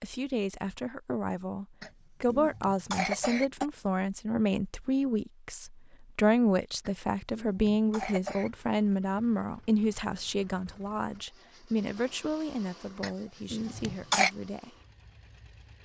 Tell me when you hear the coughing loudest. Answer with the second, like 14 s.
14 s.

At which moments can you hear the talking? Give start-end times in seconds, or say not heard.
0.0-14.8.